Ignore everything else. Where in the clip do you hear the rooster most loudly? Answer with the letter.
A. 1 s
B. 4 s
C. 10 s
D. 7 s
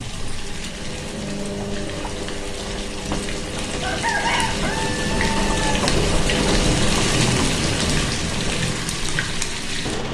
B.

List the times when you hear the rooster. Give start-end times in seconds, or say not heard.
3.8-5.8.